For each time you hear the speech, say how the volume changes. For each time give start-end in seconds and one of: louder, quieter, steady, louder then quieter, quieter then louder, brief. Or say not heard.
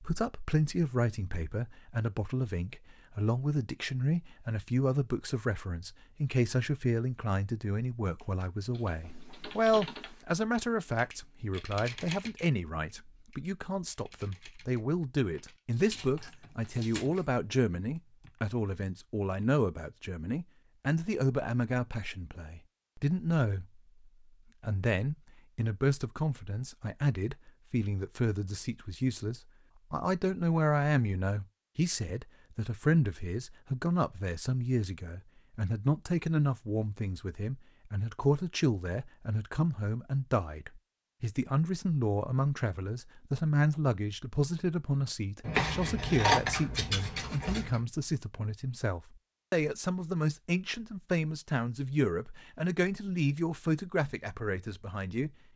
0.0-23.8 steady
24.6-55.3 steady.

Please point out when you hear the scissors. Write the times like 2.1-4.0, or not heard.
15.8-17.2, 45.4-47.8.